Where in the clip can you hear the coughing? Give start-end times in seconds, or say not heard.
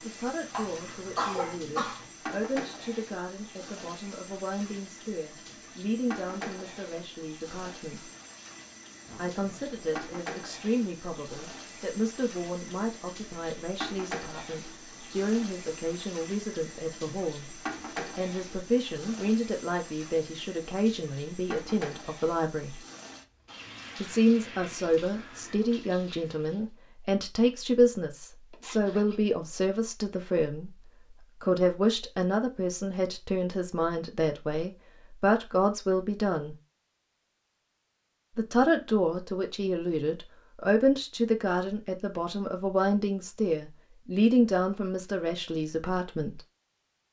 0.5-2.0.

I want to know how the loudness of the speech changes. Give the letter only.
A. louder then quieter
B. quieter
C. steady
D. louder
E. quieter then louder
D.